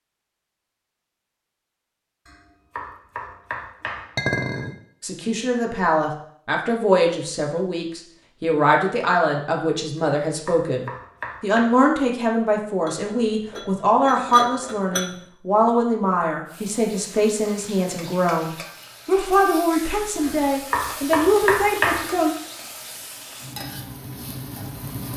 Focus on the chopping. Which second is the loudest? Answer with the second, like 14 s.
22 s.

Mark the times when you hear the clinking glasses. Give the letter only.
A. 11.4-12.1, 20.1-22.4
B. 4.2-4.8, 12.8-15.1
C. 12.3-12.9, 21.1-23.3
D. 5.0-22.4
B.